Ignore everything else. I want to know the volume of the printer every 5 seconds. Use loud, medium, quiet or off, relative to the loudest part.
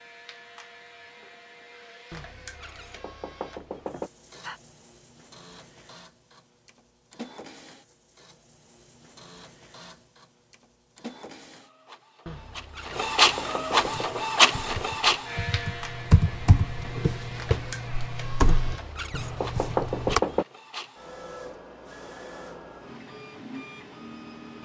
quiet, quiet, loud, medium, quiet.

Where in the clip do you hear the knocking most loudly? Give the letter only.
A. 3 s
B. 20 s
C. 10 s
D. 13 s
B.